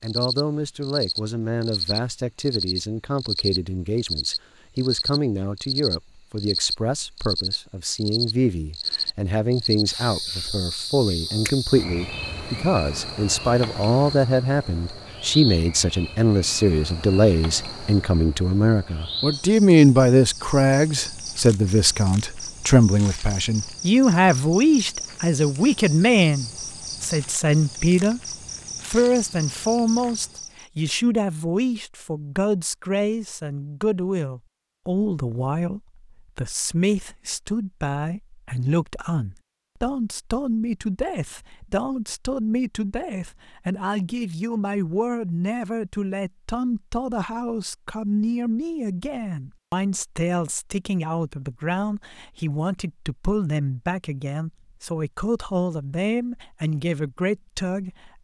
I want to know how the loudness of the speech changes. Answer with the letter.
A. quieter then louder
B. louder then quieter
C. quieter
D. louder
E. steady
B.